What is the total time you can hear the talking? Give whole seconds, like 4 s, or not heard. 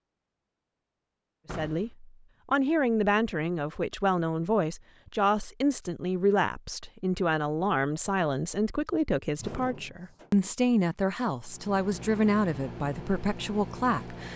13 s.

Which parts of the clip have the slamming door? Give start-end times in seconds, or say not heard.
1.4-1.9, 9.3-10.3.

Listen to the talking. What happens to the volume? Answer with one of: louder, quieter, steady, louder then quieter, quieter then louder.
steady.